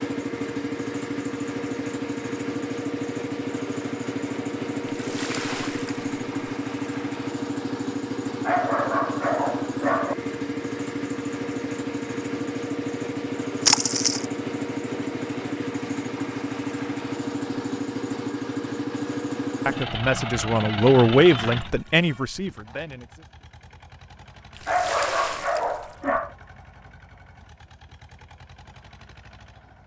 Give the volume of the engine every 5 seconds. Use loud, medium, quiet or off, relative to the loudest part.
loud, loud, loud, loud, medium, quiet.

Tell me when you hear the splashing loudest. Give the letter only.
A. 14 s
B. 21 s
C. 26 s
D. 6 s
A.